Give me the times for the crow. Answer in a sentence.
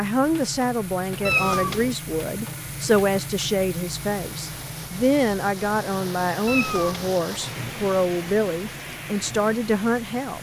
You can't hear the crow here.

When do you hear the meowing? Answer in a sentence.
The meowing can be heard from 1.2 to 1.9 s and from 6.5 to 7.2 s.